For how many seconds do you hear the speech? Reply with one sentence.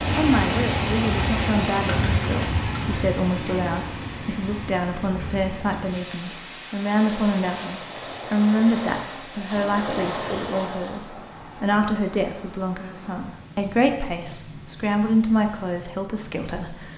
The speech can be heard for 17 seconds in total.